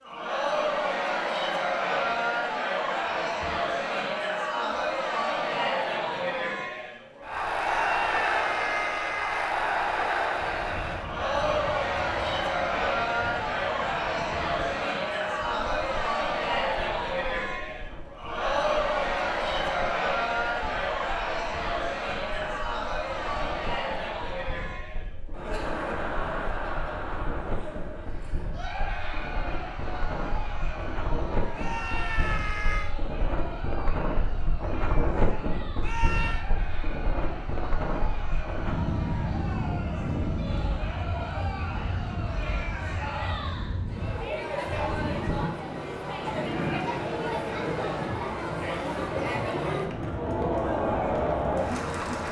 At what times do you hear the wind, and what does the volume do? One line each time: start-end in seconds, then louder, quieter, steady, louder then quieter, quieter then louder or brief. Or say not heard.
10.3-52.2 louder.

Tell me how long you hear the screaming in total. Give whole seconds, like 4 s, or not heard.
4 s.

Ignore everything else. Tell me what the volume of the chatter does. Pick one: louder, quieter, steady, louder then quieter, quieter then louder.
quieter then louder.